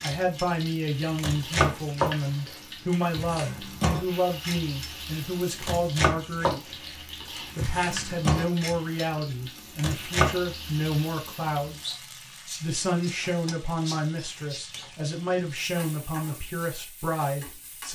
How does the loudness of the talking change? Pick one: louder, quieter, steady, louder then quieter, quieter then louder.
steady.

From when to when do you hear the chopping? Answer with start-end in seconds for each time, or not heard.
0.0-0.5, 1.1-2.1, 2.9-5.0, 5.6-6.7, 7.3-9.1, 9.8-10.3.